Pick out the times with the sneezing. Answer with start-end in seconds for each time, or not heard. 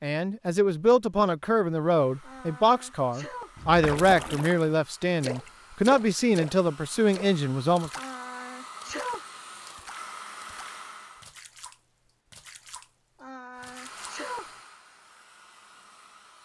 2.2-3.5, 8.0-9.2, 13.2-14.5.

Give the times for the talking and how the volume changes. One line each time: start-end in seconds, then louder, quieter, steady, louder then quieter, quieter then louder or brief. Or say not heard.
0.0-7.9 steady.